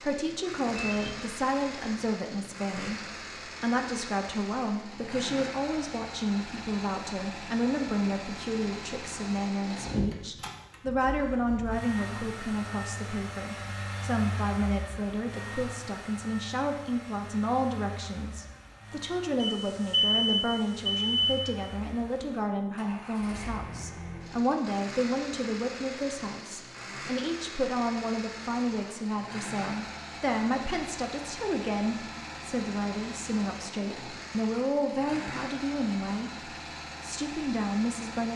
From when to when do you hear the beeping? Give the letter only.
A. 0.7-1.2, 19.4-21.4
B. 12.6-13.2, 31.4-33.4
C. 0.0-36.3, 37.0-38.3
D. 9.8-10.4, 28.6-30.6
A.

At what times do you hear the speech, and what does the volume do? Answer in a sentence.
You can hear the speech from 0.0 to 36.3 s, at a steady volume; and briefly from 37.0 to 38.3 s.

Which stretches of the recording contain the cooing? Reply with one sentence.
You can't hear the cooing here.